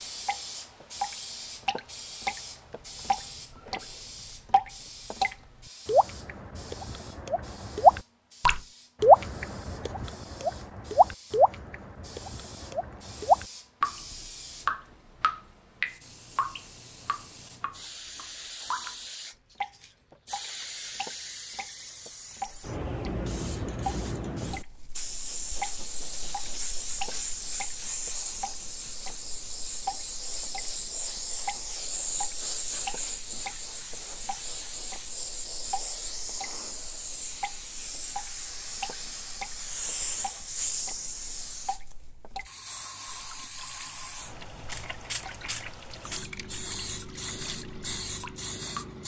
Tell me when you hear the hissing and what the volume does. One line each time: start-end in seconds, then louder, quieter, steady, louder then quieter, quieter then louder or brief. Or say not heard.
0.0-49.0 louder.